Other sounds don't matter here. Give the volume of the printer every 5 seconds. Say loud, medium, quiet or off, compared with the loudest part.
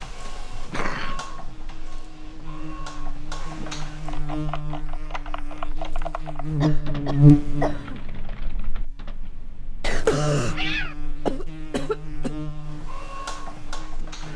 loud, off, loud.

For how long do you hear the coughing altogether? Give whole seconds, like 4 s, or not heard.
5 s.